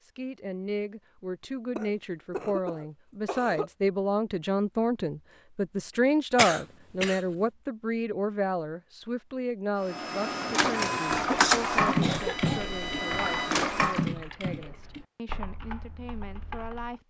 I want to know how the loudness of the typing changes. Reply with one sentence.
The volume of the typing goes down.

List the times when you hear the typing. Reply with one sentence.
You can hear the typing from 10.4 to 16.9 s.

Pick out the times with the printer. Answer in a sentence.
You can hear the printer from 9.8 to 14.1 s.